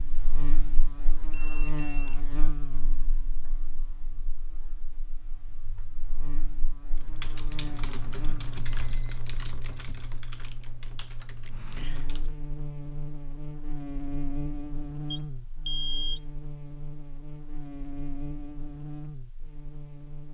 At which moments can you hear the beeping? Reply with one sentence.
The beeping can be heard from 1.3 to 2.2 s, from 8.7 to 9.8 s and from 15.1 to 16.3 s.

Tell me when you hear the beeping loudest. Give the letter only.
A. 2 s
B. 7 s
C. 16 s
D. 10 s
C.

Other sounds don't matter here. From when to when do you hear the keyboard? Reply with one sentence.
You can hear the keyboard from 6.9 to 12.3 s.